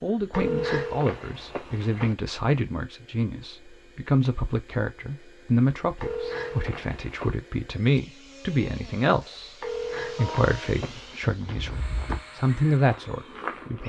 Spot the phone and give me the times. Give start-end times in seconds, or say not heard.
0.3-2.1, 6.0-7.3, 9.6-11.2.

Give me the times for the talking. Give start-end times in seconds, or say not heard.
0.0-13.8.